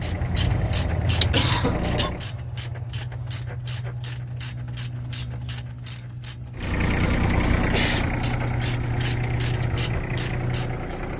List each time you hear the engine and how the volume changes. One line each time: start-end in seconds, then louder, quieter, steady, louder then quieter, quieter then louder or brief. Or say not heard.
0.0-2.3 brief
6.5-11.1 quieter.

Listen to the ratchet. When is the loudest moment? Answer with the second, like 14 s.
1 s.